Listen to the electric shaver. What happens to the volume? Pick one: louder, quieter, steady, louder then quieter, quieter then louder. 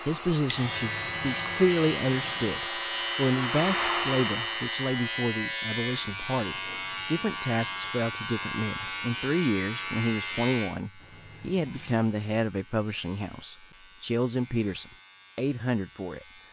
quieter.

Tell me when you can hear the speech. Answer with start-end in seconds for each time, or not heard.
0.0-16.2.